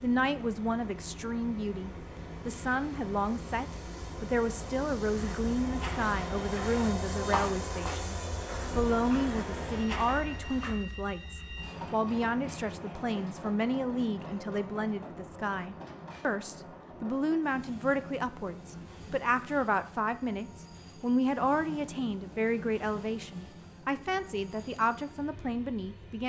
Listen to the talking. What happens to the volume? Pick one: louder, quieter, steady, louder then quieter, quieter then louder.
steady.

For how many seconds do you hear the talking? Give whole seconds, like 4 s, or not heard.
26 s.